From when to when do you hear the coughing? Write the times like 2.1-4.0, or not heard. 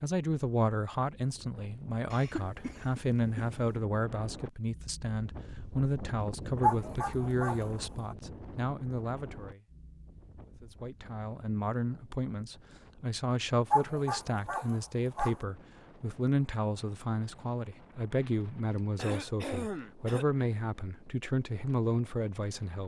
2.1-3.8, 18.9-20.2.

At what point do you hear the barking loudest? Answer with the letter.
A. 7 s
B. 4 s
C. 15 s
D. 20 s
A.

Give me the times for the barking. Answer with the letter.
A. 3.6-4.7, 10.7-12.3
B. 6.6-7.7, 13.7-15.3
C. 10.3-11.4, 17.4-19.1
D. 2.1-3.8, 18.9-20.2
B.